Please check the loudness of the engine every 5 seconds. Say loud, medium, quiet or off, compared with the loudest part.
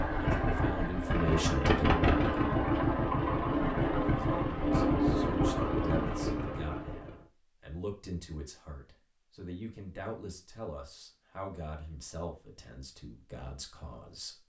loud, loud, off.